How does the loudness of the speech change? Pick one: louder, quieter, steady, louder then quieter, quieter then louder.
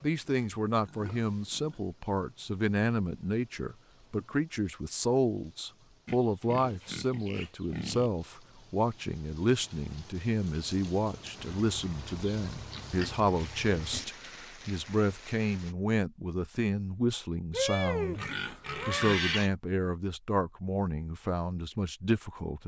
steady.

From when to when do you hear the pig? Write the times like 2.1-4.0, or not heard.
0.3-1.8, 6.0-8.1, 12.1-14.1, 17.5-19.5.